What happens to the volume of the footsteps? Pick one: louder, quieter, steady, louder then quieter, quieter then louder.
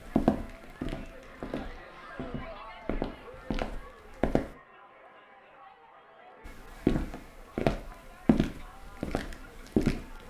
quieter then louder.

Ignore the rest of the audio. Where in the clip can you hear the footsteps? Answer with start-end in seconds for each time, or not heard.
0.0-4.5, 6.5-10.2.